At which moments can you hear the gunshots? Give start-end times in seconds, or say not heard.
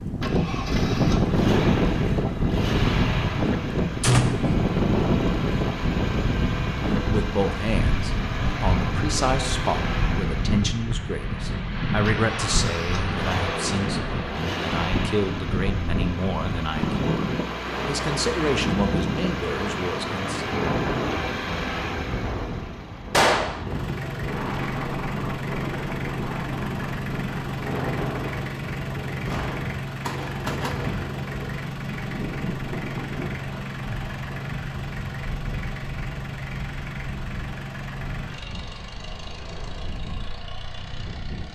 4.0-4.5, 23.1-23.6, 29.2-31.1.